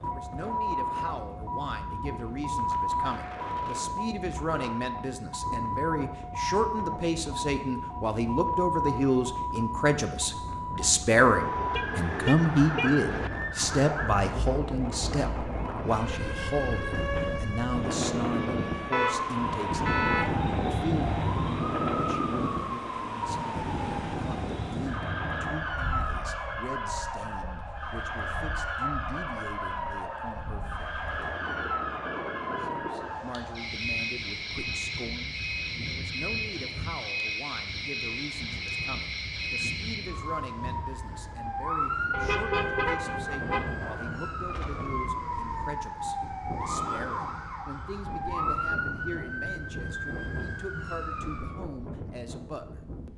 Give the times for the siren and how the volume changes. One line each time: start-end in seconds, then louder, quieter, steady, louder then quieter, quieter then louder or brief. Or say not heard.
0.0-51.6 steady.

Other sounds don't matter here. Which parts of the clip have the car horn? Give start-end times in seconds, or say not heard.
11.2-13.3, 18.9-20.3, 42.1-43.6.